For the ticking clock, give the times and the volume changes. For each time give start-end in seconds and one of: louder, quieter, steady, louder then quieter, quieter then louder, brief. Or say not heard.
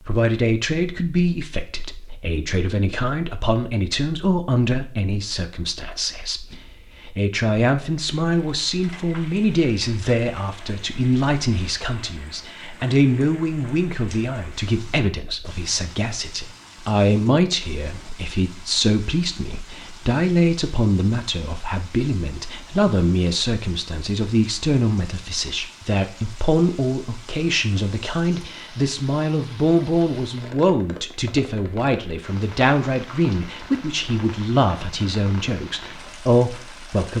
not heard.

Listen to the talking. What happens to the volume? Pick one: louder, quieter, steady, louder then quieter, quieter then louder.
steady.